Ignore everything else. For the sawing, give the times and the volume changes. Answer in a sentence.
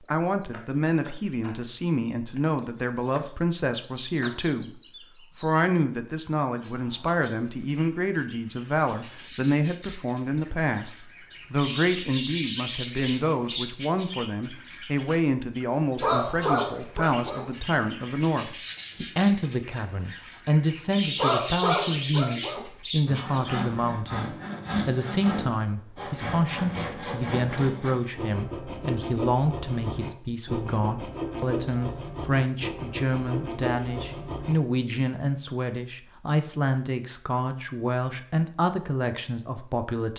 You can hear the sawing from 23.1 to 34.5 s, at a steady volume.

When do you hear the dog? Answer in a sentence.
You can hear the dog from 16.0 to 17.4 s and from 21.1 to 22.6 s.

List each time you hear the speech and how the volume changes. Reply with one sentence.
The speech can be heard from 0.1 to 40.1 s, at a steady volume.